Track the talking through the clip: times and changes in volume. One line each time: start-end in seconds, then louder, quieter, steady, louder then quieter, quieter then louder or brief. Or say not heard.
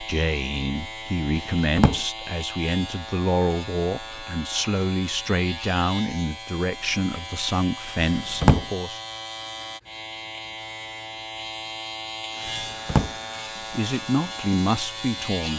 0.0-9.0 steady
13.7-15.5 brief.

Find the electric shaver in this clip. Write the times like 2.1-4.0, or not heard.
0.0-15.5.